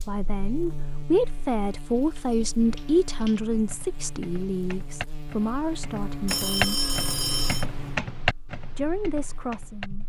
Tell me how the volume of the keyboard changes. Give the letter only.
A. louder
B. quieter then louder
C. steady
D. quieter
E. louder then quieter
A.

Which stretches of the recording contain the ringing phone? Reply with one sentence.
You can hear the ringing phone from 6.2 to 7.7 s.